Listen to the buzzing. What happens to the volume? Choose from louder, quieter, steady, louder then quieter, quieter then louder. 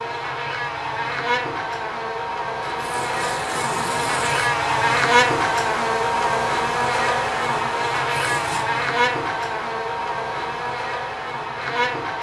louder then quieter.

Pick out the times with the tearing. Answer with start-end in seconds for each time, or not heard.
2.7-4.5, 8.1-8.7.